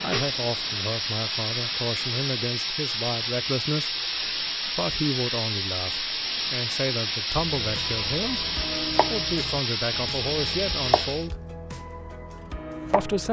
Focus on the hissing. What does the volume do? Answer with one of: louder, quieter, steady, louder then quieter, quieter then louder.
steady.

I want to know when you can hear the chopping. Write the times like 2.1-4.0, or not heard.
7.4-13.2.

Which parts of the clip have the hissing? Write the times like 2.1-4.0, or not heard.
0.0-11.3.